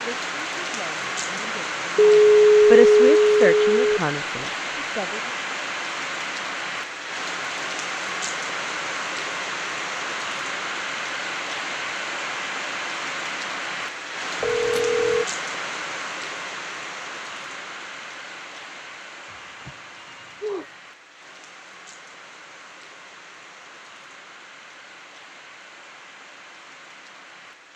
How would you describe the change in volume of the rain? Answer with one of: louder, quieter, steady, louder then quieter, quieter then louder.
quieter.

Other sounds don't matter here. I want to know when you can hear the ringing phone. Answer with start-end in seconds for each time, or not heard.
1.9-4.0, 14.4-15.2, 19.3-20.8.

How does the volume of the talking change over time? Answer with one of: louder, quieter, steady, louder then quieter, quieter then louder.
louder then quieter.